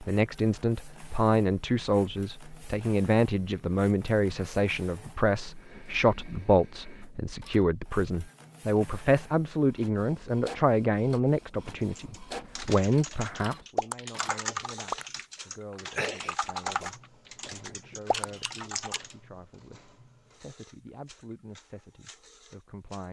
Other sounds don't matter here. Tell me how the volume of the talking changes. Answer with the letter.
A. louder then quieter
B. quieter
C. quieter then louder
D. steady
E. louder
B.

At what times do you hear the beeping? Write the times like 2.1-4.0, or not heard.
not heard.